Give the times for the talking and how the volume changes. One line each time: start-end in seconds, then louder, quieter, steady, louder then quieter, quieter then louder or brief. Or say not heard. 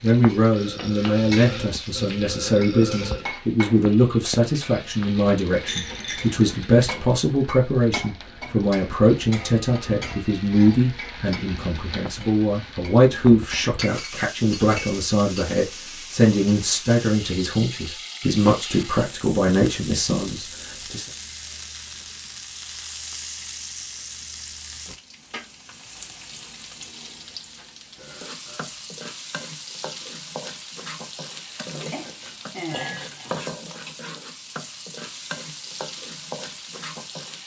0.0-21.1 steady.